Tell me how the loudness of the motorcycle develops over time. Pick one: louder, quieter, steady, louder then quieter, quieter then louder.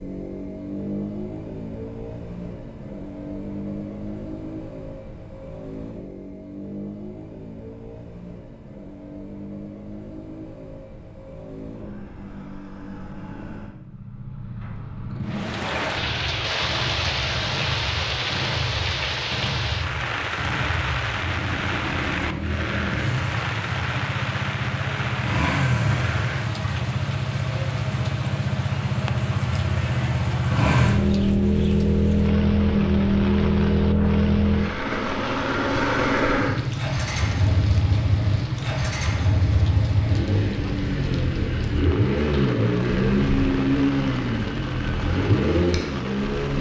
louder.